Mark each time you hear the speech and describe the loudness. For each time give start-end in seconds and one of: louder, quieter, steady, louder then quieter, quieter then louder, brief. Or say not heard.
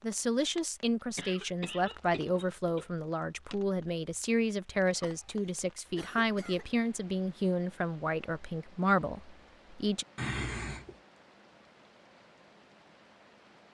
0.0-10.1 steady.